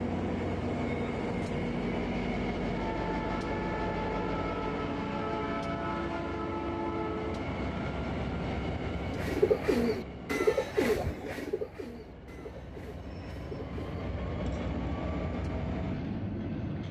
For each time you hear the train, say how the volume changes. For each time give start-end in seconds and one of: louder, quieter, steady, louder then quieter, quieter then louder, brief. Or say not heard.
0.0-16.8 quieter then louder.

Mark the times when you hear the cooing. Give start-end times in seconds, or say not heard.
8.9-14.7.